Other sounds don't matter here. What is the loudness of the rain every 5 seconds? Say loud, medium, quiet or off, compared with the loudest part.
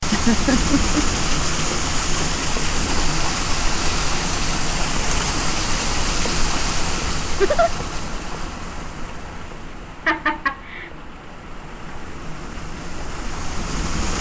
loud, loud, medium.